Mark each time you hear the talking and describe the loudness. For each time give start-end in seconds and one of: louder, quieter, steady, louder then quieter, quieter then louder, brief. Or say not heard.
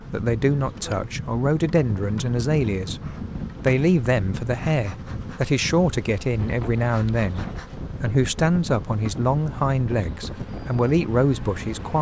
0.1-3.0 brief
3.6-11.9 steady.